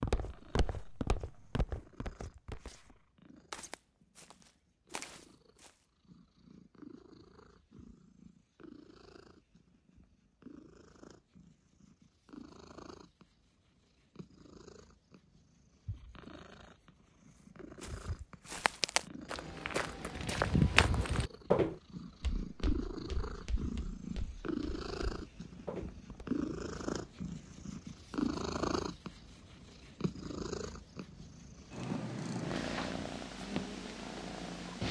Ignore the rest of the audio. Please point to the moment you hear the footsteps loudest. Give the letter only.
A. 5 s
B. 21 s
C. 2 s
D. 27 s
B.